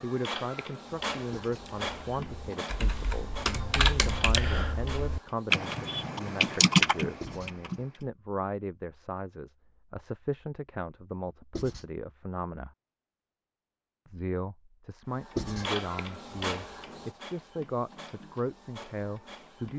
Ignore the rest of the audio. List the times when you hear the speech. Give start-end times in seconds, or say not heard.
0.0-12.8, 14.1-19.7.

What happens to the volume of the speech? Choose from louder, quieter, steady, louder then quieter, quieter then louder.
steady.